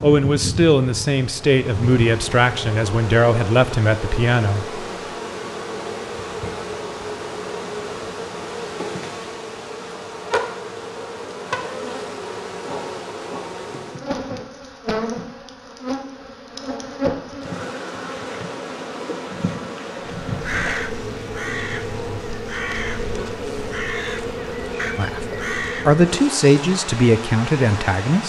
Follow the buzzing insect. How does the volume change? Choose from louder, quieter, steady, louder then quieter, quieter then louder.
steady.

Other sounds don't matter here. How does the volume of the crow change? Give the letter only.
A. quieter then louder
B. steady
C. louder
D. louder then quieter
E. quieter
B.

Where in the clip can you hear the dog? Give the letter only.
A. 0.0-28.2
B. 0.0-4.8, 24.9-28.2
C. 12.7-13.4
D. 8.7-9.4
C.